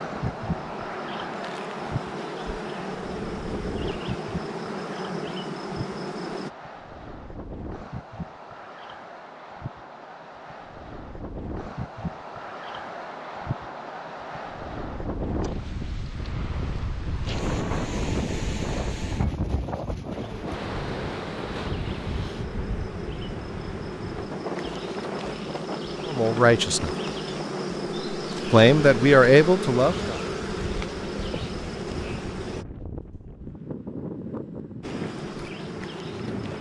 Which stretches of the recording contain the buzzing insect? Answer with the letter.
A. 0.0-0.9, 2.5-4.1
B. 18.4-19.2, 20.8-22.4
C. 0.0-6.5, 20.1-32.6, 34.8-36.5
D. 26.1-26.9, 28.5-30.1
C.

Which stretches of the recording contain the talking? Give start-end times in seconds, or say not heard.
26.1-26.9, 28.5-30.1.